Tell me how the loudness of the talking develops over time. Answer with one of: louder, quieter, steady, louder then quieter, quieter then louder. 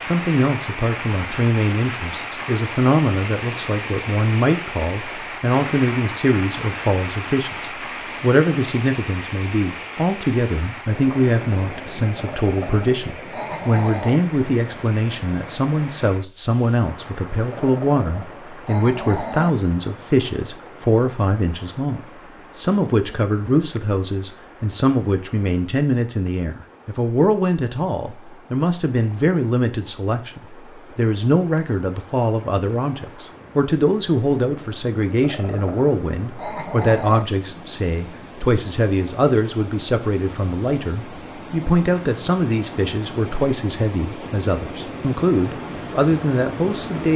steady.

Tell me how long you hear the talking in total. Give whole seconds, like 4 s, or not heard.
47 s.